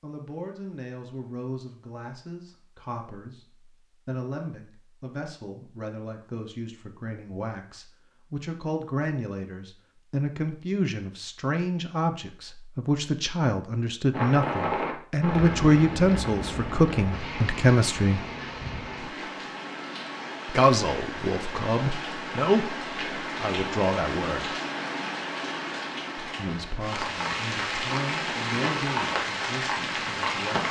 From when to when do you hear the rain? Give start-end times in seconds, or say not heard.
14.1-30.6.